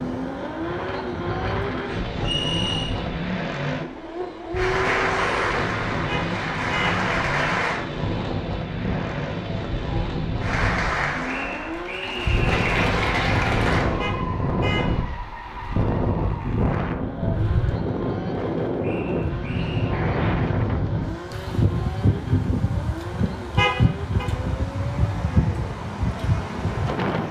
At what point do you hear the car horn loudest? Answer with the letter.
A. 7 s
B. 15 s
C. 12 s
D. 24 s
D.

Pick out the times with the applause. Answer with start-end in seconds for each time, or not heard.
4.5-7.8, 10.4-13.9.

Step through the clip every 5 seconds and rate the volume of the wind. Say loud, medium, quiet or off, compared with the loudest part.
medium, medium, loud, loud, loud, loud.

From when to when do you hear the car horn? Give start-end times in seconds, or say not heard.
6.0-7.0, 13.9-14.9, 23.6-24.2.